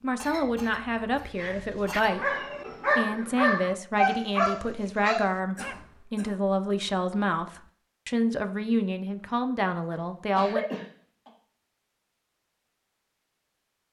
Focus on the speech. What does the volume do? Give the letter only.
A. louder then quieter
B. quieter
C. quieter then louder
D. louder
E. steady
E.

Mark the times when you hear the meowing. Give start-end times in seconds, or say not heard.
not heard.